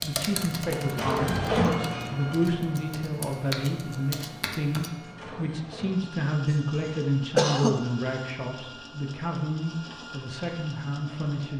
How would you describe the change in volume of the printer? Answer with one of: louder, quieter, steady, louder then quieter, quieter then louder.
quieter.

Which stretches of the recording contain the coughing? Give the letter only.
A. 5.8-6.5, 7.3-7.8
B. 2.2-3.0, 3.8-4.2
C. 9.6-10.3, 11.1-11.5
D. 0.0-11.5
A.